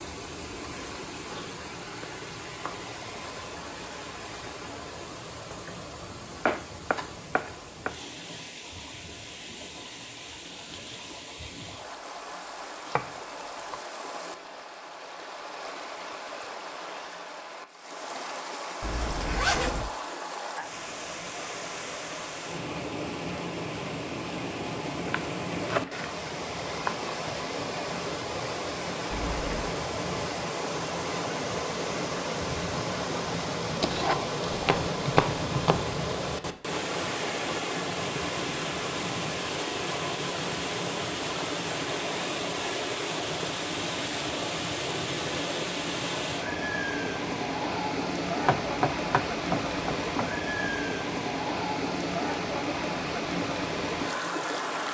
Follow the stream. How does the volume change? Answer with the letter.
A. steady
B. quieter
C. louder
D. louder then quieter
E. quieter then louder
C.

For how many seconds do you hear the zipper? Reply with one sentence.
You can hear the zipper for 2 seconds altogether.